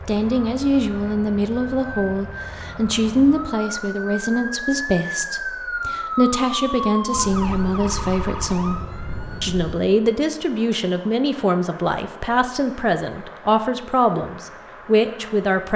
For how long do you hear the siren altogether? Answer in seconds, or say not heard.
10 s.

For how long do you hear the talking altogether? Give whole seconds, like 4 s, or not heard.
15 s.